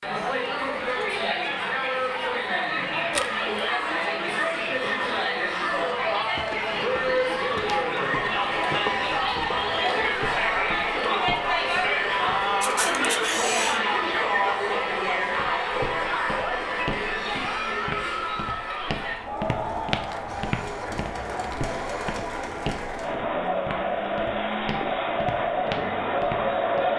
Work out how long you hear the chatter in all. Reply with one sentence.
You can hear the chatter for 27 seconds altogether.